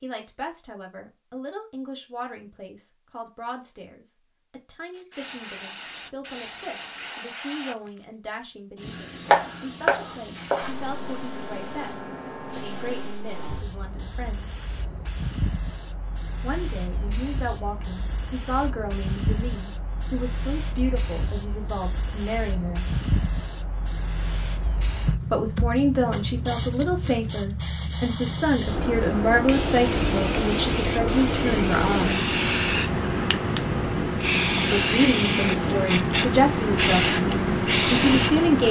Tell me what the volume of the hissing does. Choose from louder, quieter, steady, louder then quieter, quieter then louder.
louder.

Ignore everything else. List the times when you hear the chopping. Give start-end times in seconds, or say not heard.
9.2-10.8.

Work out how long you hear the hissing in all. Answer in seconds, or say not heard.
34 s.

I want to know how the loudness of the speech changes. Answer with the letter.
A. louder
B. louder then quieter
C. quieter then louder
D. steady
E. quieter
A.